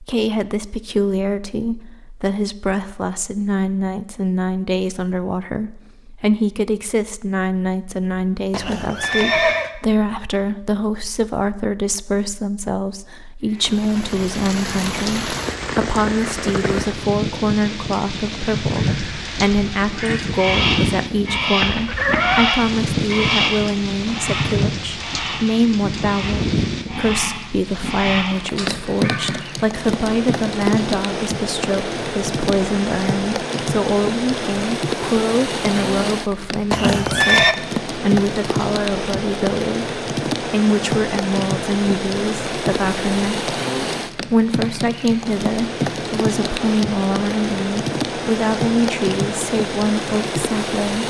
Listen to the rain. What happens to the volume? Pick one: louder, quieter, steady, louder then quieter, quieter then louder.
steady.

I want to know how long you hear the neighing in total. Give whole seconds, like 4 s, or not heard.
3 s.